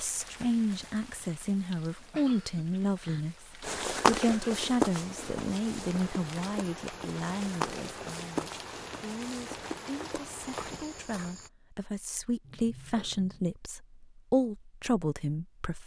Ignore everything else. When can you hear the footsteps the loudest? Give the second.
4 s.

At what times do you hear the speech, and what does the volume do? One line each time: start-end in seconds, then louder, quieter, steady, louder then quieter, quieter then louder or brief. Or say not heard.
0.0-15.8 quieter then louder.